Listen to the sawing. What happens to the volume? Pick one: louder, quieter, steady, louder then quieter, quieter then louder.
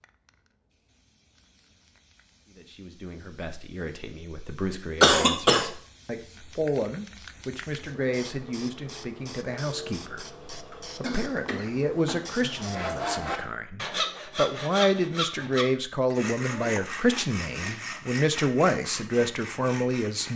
quieter.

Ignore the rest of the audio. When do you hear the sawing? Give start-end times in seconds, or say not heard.
12.5-20.3.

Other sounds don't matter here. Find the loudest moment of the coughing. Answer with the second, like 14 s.
5 s.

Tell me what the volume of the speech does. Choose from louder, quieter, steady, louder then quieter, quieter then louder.
louder.